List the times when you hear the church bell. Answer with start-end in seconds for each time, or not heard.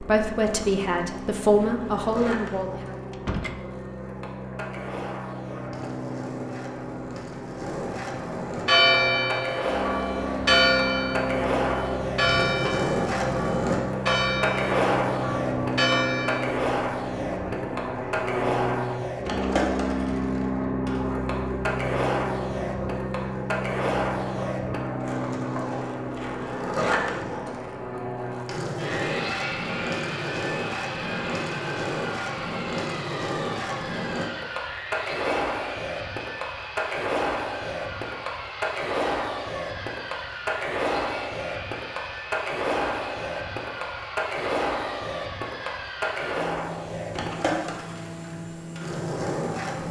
8.7-16.6.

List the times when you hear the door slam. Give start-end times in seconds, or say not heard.
3.1-3.6.